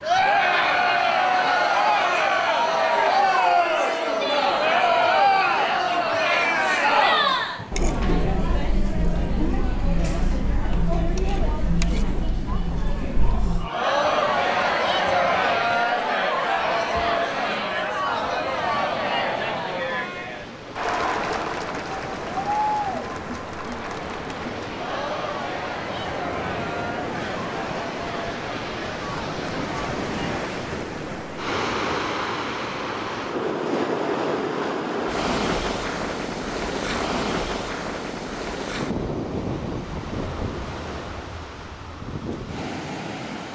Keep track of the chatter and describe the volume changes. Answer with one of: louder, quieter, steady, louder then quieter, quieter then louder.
quieter.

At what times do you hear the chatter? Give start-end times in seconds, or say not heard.
0.0-30.4.